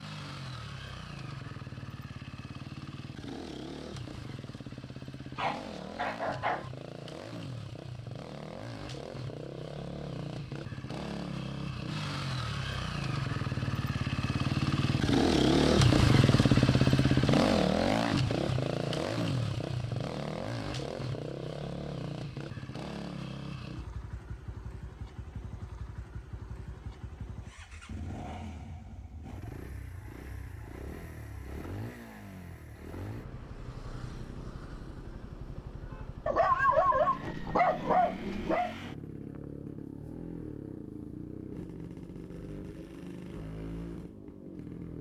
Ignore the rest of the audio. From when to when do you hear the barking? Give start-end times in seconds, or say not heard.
5.3-6.7, 36.2-38.8.